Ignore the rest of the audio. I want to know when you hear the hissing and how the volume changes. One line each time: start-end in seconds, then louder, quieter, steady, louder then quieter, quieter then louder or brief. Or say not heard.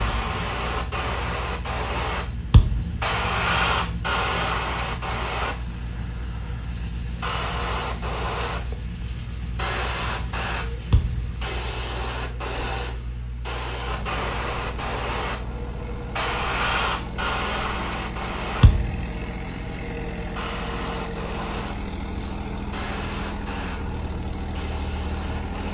0.0-25.6 quieter.